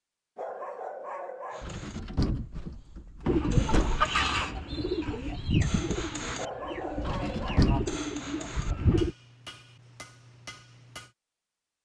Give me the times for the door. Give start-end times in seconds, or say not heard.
1.6-4.0, 7.0-8.0.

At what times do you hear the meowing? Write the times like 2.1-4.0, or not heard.
not heard.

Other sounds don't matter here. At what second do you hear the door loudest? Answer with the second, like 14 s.
8 s.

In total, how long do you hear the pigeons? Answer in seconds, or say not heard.
6 s.